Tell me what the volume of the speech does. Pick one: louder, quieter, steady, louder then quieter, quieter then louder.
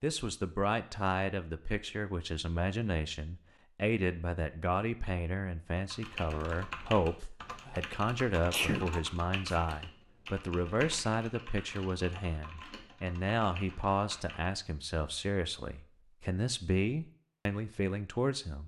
steady.